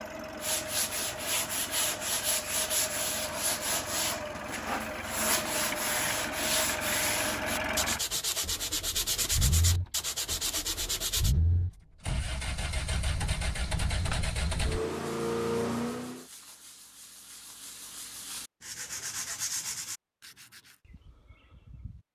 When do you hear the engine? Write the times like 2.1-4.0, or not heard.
0.0-16.2.